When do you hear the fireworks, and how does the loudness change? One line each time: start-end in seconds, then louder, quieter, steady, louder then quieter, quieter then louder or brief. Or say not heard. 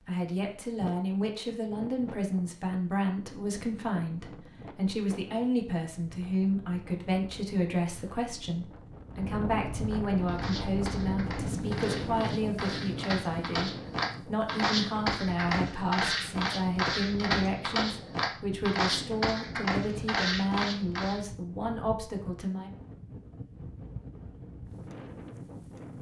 not heard.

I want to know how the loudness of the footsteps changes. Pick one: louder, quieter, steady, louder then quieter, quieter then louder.
louder.